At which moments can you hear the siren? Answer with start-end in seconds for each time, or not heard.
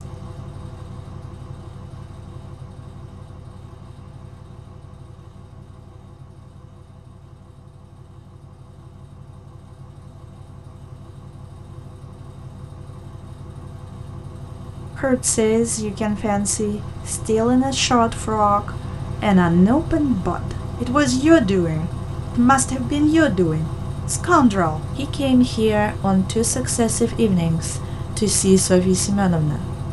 not heard.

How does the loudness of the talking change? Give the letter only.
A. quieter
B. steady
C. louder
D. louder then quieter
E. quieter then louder
B.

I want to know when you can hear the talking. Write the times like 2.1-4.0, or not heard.
14.9-29.6.